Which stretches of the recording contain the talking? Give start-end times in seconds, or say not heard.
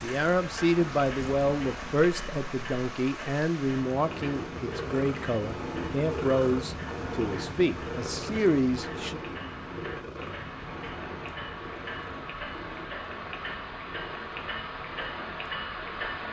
0.0-9.2.